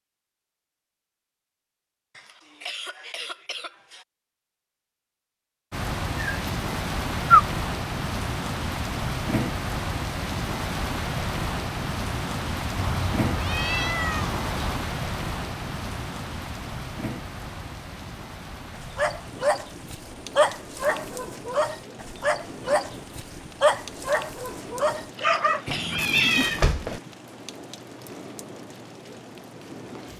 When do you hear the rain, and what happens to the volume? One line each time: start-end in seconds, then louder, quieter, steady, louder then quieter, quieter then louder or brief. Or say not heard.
5.7-30.1 quieter.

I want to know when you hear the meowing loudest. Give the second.
7 s.